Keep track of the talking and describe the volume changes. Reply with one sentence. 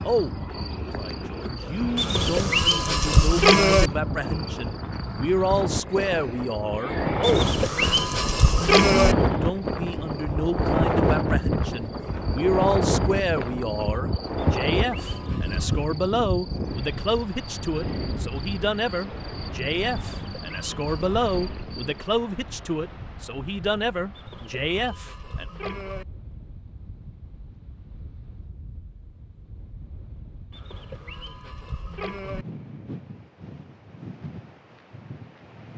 The loudness of the talking stays about the same.